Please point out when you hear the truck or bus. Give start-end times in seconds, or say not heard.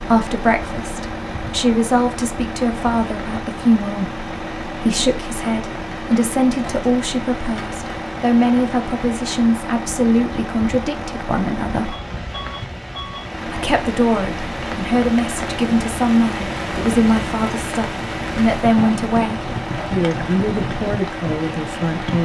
0.0-22.2.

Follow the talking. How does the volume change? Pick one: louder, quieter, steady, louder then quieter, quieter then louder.
steady.